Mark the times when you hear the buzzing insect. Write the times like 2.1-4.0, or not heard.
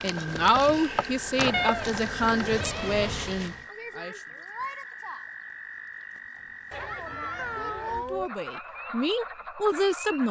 0.0-3.6.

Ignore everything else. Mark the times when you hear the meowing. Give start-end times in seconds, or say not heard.
1.5-3.1, 7.3-8.3.